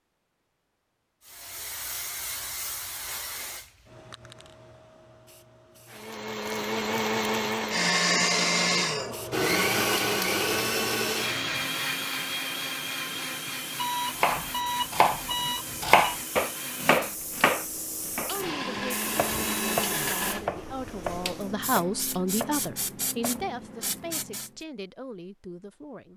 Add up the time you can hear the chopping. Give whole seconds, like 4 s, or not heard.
9 s.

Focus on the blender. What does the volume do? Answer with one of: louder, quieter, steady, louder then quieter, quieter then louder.
quieter then louder.